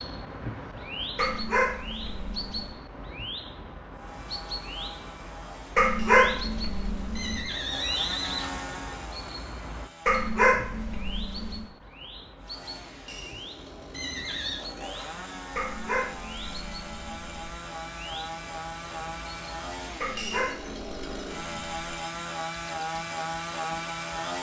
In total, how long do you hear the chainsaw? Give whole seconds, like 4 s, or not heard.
18 s.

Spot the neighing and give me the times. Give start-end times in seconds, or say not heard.
7.2-8.7, 13.9-14.7.